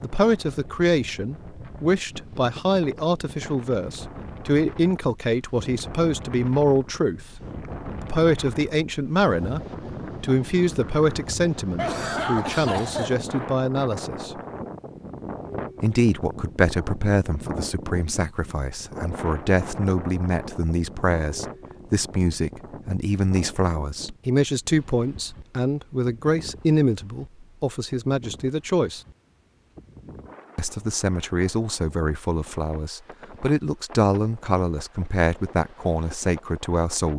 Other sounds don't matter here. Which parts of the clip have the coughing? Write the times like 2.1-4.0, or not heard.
11.8-13.2.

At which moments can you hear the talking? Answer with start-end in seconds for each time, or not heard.
0.0-7.2, 8.0-9.6, 10.2-14.4, 15.8-29.0, 30.6-37.1.